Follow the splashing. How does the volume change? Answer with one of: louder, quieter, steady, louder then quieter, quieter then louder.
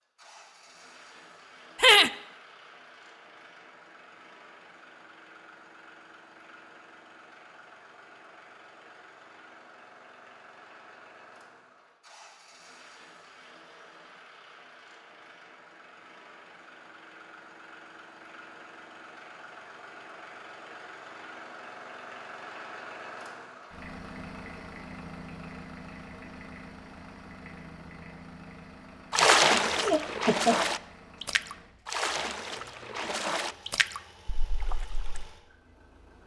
quieter.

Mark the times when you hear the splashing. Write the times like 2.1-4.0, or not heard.
29.1-35.3.